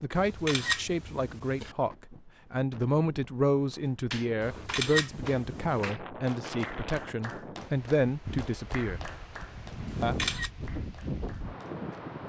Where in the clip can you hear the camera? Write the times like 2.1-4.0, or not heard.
0.1-1.8, 4.4-5.9, 9.8-10.5.